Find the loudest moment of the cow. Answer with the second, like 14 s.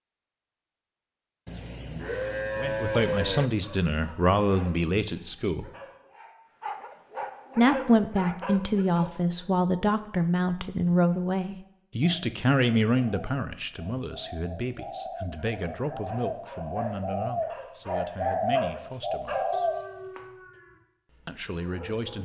3 s.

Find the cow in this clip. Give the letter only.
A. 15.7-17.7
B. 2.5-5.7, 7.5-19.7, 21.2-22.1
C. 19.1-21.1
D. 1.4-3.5
D.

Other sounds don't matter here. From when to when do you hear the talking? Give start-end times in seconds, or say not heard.
2.5-5.7, 7.5-19.7, 21.2-22.1.